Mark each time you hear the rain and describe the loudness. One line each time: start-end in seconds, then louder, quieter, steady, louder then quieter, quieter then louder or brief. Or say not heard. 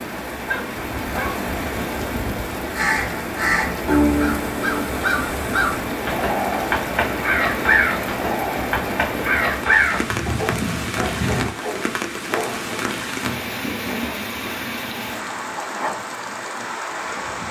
0.0-17.4 steady.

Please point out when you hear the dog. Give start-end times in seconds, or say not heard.
0.5-1.4, 10.2-12.8.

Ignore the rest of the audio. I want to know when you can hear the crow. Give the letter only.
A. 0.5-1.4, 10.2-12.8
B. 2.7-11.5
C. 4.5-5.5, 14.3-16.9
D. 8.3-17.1
B.